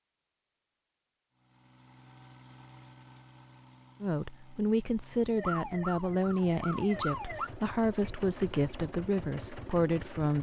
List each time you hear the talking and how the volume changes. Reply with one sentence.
You can hear the talking from 4.0 to 10.3 s, at a steady volume.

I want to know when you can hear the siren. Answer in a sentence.
You can hear the siren from 5.3 to 7.5 s.